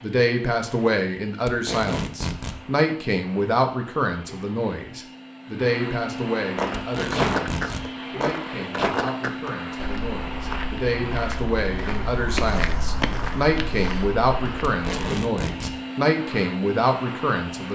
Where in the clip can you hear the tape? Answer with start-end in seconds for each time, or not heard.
1.4-2.6, 6.8-7.8, 14.7-15.8.